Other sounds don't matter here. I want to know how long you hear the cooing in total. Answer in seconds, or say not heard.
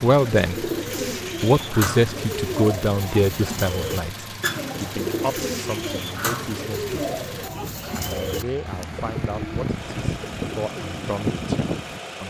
12 s.